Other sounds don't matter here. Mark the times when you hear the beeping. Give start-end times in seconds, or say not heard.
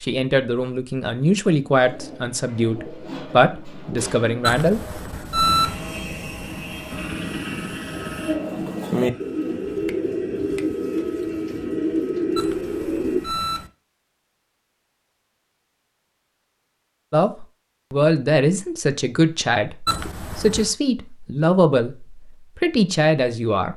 4.4-5.8, 12.3-13.7, 19.9-20.7.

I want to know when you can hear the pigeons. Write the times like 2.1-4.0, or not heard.
1.8-13.2.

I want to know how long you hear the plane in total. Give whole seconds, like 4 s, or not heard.
8 s.